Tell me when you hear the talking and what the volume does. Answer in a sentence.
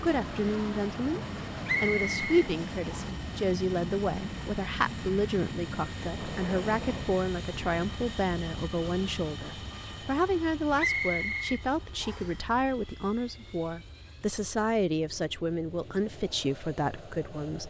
The talking can be heard briefly from 0.0 to 1.2 s; and from 1.8 to 17.6 s, at a steady volume.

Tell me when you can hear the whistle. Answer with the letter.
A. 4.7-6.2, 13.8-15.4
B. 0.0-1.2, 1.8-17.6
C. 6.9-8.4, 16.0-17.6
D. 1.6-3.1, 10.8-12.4
D.